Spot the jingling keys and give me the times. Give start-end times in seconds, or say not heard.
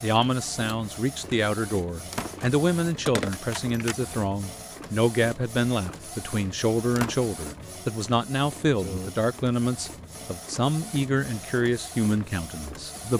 2.4-4.0.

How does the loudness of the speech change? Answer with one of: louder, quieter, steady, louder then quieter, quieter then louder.
steady.